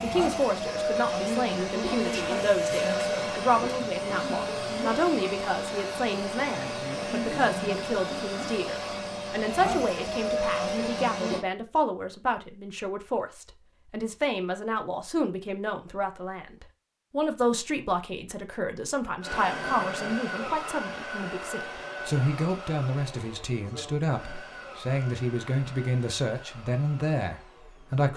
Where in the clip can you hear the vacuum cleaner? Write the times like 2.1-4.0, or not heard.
0.0-11.4, 19.2-28.1.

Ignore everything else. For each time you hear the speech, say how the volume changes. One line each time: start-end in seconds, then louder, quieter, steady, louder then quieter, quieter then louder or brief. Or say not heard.
0.0-28.1 steady.